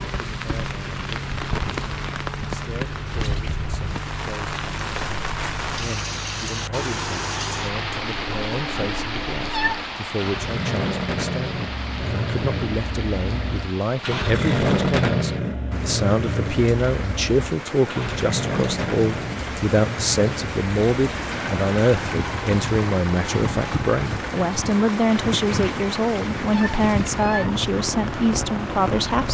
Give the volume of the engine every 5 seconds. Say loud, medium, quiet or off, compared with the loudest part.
medium, medium, loud, loud, medium, medium.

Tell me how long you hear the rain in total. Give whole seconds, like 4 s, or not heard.
29 s.